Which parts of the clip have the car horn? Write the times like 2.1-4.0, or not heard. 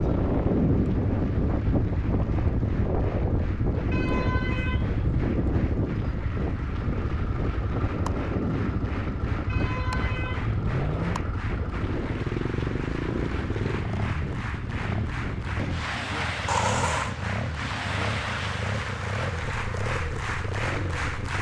3.9-5.2, 9.4-11.2, 16.4-17.1.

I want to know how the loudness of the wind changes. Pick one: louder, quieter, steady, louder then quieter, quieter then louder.
quieter.